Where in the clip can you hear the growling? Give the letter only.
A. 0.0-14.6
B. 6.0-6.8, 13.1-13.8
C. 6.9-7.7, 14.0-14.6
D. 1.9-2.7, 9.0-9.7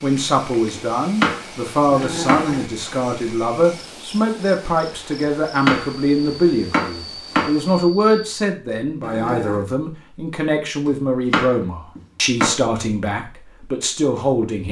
D.